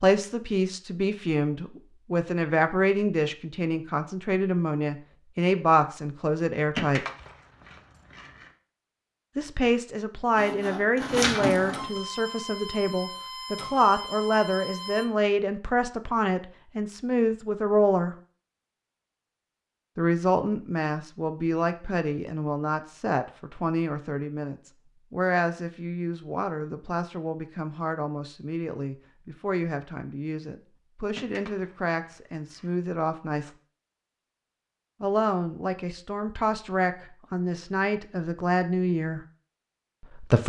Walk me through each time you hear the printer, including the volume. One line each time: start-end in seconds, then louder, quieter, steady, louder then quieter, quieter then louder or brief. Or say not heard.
10.3-15.1 quieter.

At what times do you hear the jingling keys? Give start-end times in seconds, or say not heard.
6.8-8.5, 31.1-32.8.